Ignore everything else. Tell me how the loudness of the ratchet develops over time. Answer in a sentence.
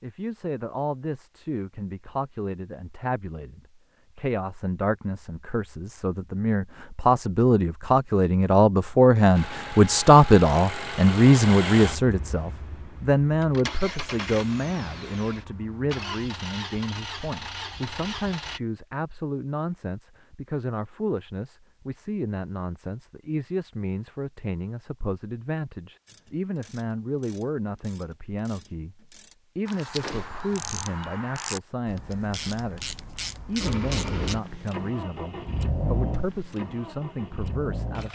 The volume of the ratchet goes up.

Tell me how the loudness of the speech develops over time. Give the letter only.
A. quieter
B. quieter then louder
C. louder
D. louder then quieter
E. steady
D.